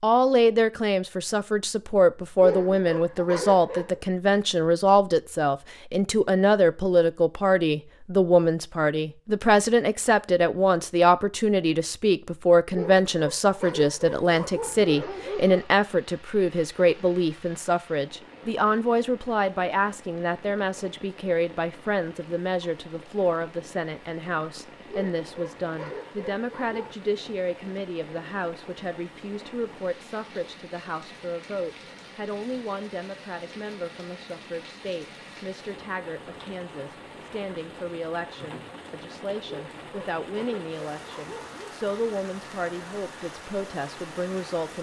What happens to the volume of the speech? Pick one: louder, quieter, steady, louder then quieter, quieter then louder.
quieter.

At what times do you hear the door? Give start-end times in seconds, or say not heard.
not heard.